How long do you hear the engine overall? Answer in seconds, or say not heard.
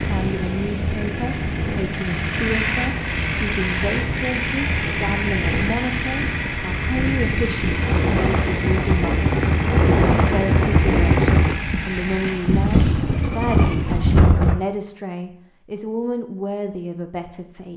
13 s.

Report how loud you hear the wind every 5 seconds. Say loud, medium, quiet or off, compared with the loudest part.
medium, loud, loud, off.